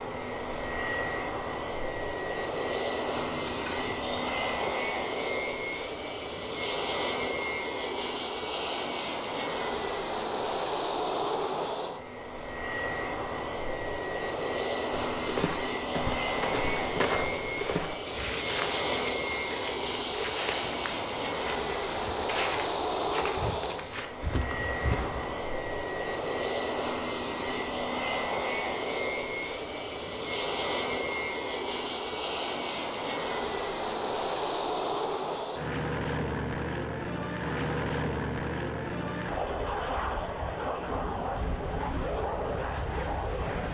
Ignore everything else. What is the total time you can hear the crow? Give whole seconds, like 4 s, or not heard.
not heard.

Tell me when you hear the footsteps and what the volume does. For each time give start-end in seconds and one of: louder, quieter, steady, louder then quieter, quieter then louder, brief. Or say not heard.
14.9-25.4 steady.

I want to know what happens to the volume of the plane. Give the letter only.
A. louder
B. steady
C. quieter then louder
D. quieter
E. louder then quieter
B.